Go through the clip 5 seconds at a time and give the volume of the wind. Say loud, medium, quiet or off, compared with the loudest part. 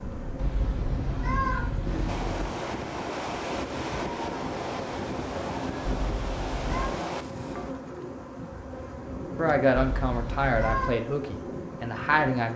loud, loud, off.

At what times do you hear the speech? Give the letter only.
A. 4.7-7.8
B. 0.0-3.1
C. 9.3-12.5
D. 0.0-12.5
C.